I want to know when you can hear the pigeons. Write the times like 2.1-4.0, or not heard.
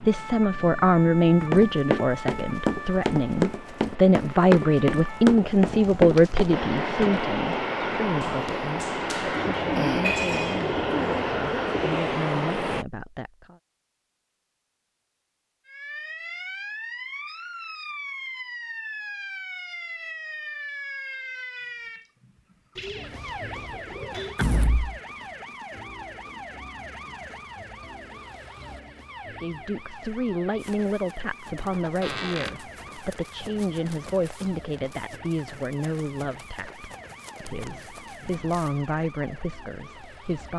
9.3-12.1, 22.8-24.4.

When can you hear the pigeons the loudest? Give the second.
10 s.